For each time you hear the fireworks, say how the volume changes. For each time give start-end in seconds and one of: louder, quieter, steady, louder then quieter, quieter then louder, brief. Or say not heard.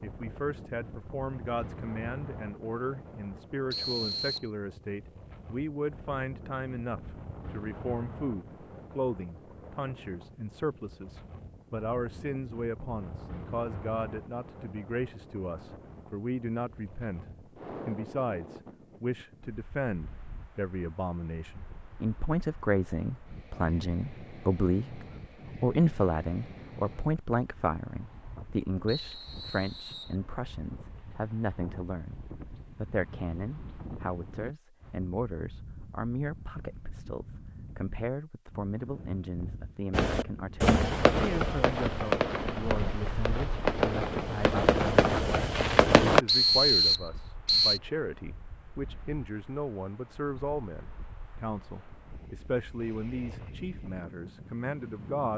39.9-46.2 quieter then louder.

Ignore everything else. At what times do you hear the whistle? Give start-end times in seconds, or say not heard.
3.7-4.5, 28.9-30.1, 46.2-47.8.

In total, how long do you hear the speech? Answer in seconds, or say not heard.
55 s.